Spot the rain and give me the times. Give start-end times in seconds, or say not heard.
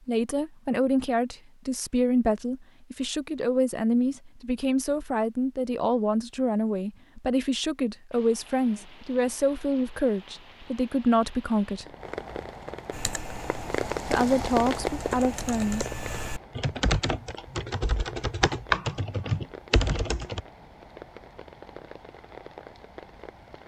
8.1-23.6.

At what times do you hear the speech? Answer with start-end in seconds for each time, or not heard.
0.1-11.8, 14.1-15.8.